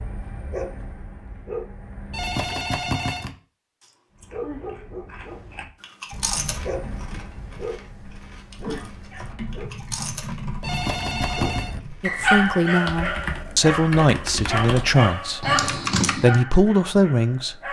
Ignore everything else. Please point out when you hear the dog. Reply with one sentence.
You can hear the dog from 0.0 to 2.5 s, from 4.2 to 9.8 s and from 11.2 to 17.6 s.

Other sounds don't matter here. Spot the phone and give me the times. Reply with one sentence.
You can hear the phone from 2.1 to 3.3 s and from 10.6 to 11.8 s.